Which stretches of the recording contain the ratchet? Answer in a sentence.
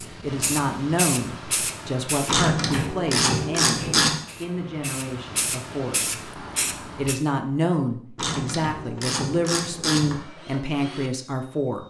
The ratchet can be heard from 2.2 to 4.1 s and from 8.2 to 10.2 s.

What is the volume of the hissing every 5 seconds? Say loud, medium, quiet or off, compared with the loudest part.
loud, loud, off.